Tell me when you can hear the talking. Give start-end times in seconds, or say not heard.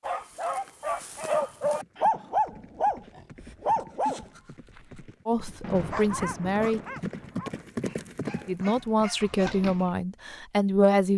5.2-6.8, 8.4-11.1.